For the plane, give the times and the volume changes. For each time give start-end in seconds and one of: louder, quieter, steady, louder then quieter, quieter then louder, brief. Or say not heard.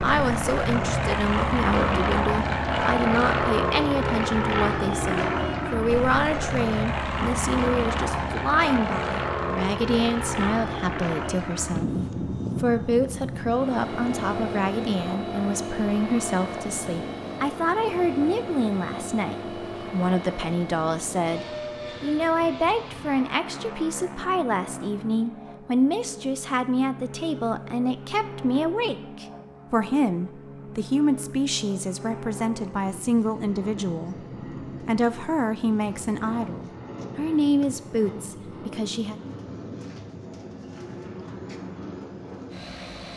0.0-43.1 quieter.